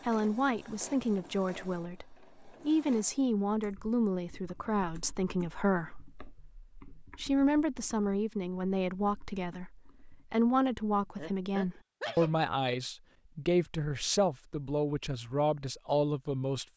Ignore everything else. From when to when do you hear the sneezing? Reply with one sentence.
The sneezing can be heard from 11.2 to 12.3 s.